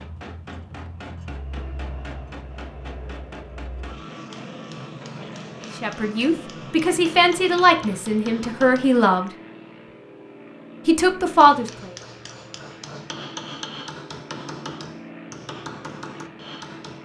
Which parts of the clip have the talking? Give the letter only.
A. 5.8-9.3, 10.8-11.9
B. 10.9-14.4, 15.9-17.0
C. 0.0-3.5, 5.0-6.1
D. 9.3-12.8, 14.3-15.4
A.